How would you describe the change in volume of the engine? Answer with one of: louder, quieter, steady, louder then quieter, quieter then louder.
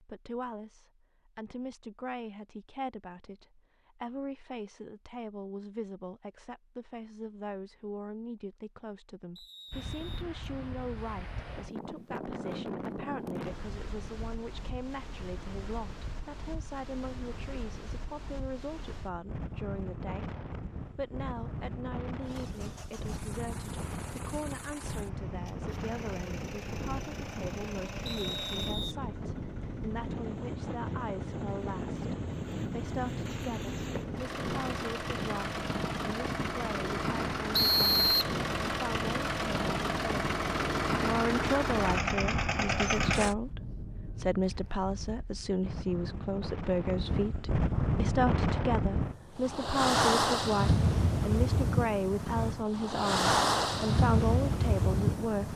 louder.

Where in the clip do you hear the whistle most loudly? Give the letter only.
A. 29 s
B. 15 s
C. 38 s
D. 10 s
C.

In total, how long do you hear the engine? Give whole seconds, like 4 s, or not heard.
21 s.